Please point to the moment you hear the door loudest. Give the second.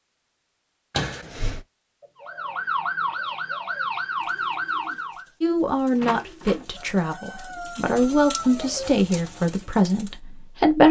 1 s.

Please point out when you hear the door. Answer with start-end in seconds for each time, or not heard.
0.9-1.6, 6.0-6.7.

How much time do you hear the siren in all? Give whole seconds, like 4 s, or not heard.
3 s.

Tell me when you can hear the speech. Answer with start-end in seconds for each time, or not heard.
5.4-10.8.